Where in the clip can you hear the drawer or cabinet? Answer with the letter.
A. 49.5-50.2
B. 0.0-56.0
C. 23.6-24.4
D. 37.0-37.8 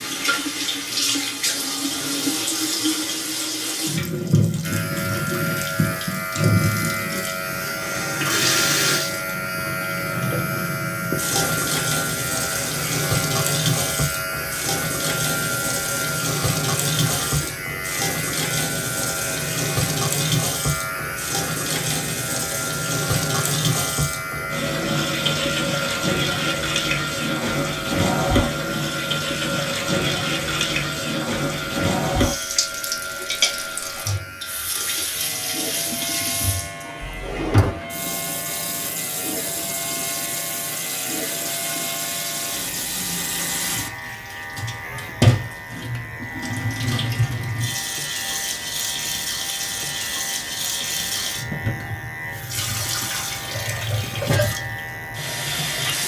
D.